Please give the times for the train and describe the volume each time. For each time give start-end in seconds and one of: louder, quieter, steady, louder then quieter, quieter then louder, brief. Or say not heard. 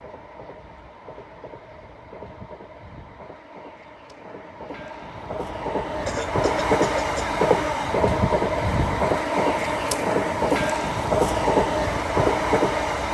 0.0-13.0 louder.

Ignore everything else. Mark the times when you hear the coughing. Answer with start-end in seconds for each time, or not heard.
6.0-7.4.